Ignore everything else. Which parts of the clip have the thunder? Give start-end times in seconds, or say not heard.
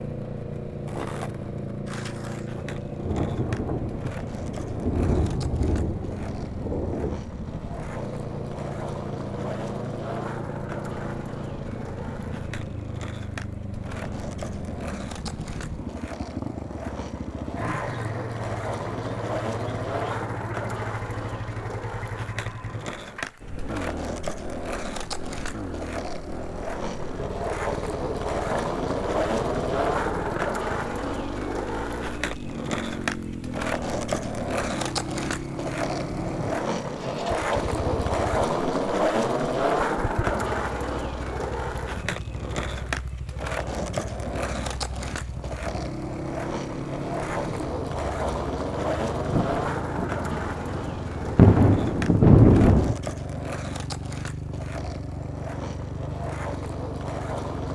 2.5-7.2, 49.2-53.0.